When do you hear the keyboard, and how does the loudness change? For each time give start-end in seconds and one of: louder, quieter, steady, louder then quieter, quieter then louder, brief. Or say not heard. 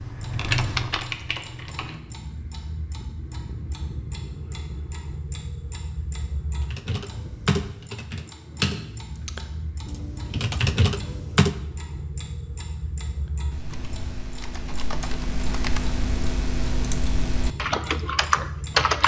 0.0-2.4 brief
6.7-11.6 quieter then louder
13.5-19.0 louder.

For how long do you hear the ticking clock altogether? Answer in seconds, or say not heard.
19 s.